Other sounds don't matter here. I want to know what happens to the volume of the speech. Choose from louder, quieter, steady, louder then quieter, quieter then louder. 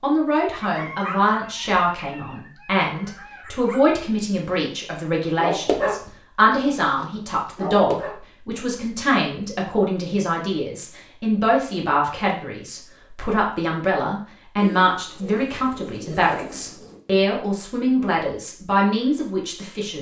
steady.